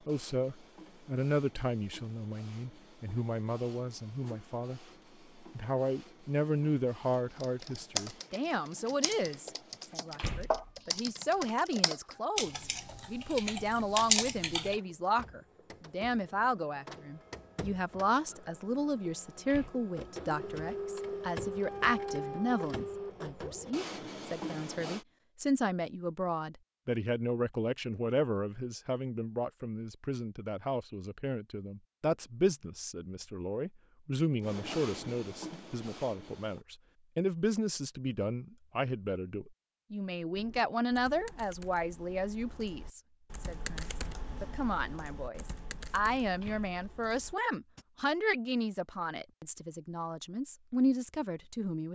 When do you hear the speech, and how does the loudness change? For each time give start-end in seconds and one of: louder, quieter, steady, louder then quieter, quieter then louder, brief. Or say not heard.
0.1-51.9 steady.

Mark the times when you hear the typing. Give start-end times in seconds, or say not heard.
7.3-14.8, 40.3-47.9.